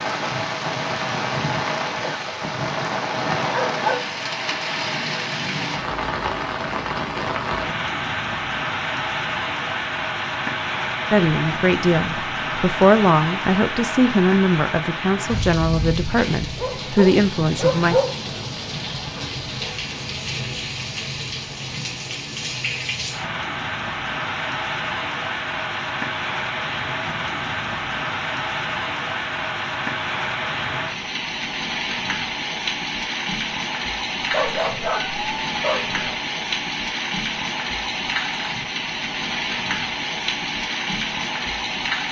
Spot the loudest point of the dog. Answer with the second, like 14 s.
18 s.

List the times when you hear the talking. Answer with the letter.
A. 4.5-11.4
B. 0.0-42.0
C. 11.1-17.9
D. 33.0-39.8
C.